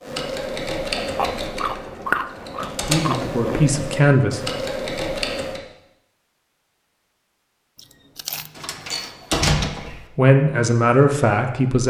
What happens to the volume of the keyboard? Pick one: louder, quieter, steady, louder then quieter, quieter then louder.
quieter then louder.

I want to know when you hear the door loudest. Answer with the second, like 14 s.
9 s.